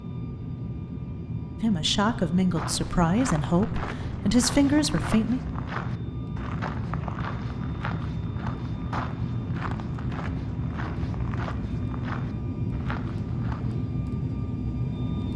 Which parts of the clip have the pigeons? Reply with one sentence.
The pigeons can't be heard in this clip.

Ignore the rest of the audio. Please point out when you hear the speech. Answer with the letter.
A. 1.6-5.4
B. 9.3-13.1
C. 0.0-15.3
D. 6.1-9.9
A.